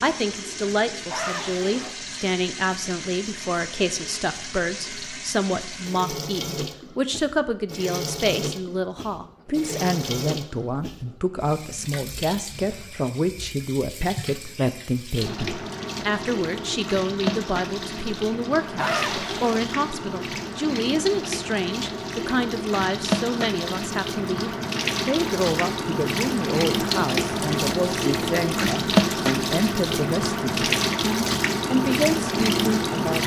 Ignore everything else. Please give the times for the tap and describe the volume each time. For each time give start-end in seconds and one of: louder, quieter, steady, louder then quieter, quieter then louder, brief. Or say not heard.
0.0-33.2 louder.